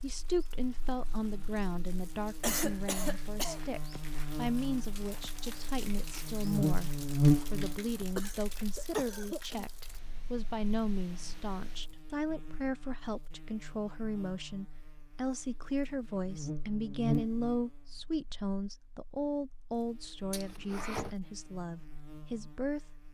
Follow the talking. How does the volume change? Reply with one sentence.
The volume of the talking stays about the same.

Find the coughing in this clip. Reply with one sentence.
You can hear the coughing from 2.4 to 3.6 s, from 8.2 to 9.6 s and from 20.3 to 21.1 s.